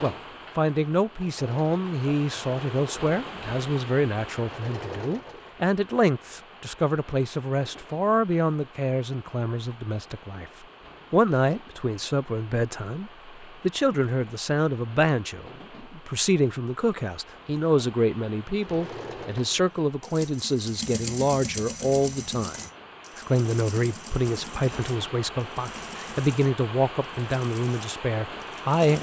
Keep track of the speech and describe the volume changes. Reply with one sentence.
The loudness of the speech stays about the same.